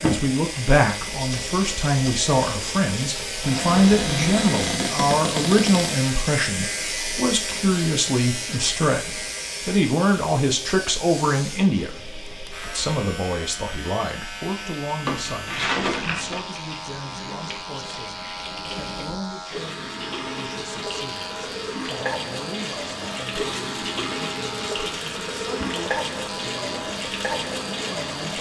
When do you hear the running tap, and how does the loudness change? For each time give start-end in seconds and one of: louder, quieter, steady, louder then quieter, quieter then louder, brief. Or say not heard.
0.0-28.3 quieter then louder.